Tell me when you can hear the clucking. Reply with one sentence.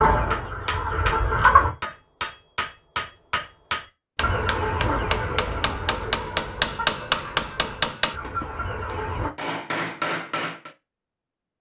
The clucking can be heard from 0.0 to 1.7 s and from 4.2 to 9.3 s.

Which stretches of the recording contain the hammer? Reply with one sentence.
The hammer can be heard from 0.3 to 10.7 s.